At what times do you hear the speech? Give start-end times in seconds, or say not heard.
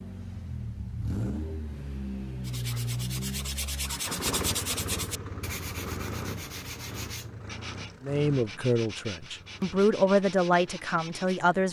8.0-11.6.